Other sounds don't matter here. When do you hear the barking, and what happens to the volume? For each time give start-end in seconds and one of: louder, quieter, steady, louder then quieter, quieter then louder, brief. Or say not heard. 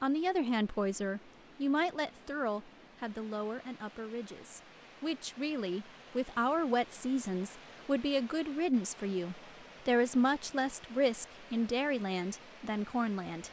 not heard.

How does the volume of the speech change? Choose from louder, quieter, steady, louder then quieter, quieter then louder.
quieter then louder.